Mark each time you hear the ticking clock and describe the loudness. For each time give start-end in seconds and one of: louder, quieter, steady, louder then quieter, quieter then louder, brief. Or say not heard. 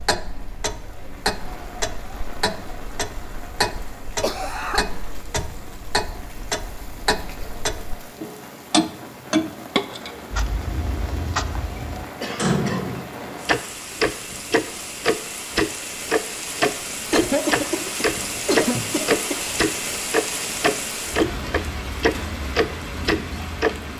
0.0-23.7 louder.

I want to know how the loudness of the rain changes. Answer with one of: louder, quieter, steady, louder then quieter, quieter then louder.
louder.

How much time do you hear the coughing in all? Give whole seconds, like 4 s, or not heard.
4 s.